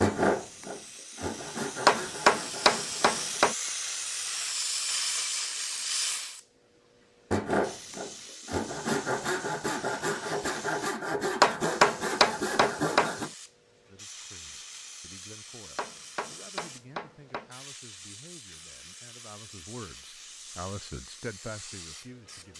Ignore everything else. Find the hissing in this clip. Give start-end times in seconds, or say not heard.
0.0-22.5.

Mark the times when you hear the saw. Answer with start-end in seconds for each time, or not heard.
0.0-3.5, 7.3-13.3.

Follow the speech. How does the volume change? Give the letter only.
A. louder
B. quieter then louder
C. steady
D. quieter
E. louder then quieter
A.